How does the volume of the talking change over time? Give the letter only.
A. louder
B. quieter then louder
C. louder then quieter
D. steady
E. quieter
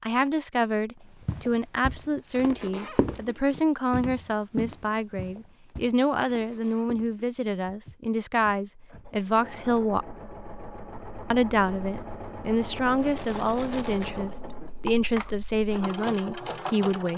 D.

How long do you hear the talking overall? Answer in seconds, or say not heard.
16 s.